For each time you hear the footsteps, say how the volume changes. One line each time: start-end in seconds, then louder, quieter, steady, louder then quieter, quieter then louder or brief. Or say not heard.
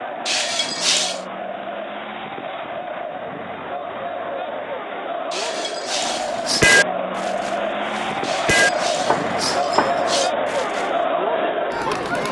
not heard.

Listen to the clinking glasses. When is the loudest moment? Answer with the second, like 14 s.
1 s.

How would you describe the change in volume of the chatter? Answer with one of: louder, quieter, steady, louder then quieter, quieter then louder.
louder.